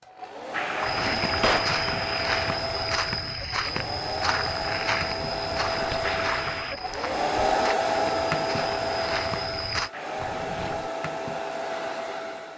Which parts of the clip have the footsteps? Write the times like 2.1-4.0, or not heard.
0.8-9.9.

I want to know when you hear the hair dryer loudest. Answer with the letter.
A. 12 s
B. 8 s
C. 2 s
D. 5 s
B.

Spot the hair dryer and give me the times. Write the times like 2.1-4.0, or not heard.
0.0-12.5.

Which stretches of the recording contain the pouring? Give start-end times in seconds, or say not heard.
0.5-2.6, 6.0-6.8, 9.9-10.6.